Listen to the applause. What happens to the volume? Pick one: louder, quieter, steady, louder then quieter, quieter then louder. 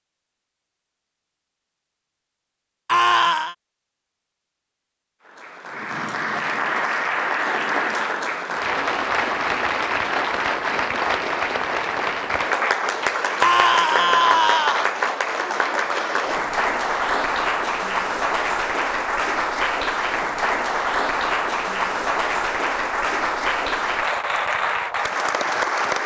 steady.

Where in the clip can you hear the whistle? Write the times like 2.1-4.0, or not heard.
not heard.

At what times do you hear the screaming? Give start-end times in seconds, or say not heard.
2.9-3.5, 13.4-14.9.